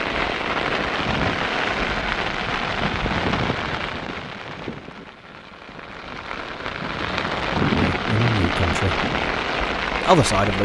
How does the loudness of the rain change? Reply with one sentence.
The volume of the rain goes down, then up.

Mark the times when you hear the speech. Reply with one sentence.
The speech can be heard from 7.9 to 9.1 s and from 10.0 to 10.6 s.